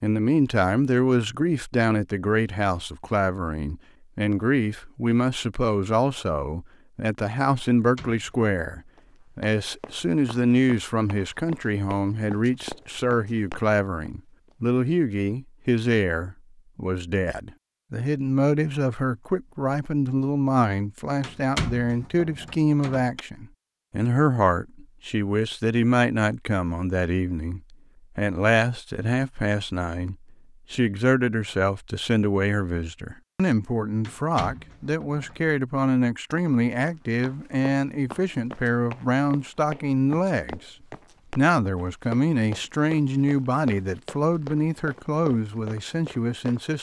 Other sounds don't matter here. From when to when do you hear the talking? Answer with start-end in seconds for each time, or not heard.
0.0-40.7, 41.4-46.7.